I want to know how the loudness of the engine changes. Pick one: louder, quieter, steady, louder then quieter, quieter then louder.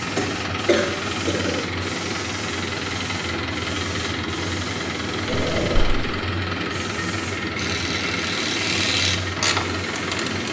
steady.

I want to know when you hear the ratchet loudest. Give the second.
9 s.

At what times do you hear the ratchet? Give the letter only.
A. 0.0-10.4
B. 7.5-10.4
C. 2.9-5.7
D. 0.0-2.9
B.